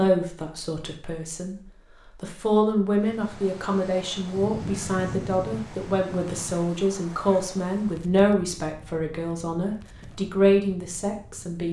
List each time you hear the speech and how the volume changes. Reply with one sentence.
You can hear the speech from 0.0 to 11.6 s, getting louder.